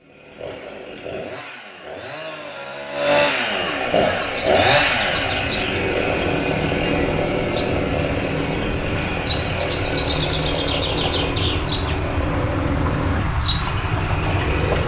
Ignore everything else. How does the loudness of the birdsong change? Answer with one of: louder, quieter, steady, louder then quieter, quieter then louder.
louder.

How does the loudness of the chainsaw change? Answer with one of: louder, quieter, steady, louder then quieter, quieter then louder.
louder then quieter.